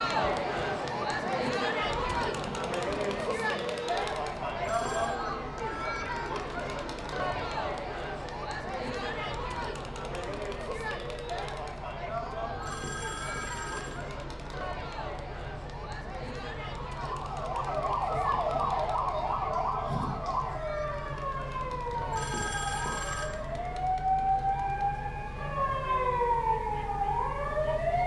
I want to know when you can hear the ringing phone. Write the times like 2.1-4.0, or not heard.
4.5-5.2, 12.5-14.1, 21.9-23.3.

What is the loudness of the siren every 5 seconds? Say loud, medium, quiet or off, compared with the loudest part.
off, off, off, loud, loud, loud.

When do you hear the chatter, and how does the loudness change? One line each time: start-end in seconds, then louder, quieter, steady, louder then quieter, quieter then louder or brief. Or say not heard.
0.0-28.0 quieter.